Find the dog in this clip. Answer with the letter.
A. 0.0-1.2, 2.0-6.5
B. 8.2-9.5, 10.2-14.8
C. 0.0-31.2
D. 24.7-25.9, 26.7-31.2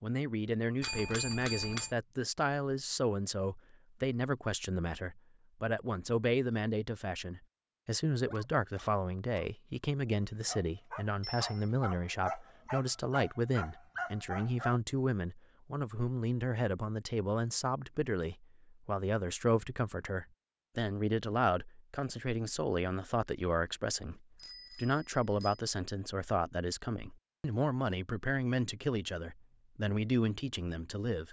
B.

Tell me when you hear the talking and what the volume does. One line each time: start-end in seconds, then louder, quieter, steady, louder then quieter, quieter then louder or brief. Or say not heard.
0.0-31.2 steady.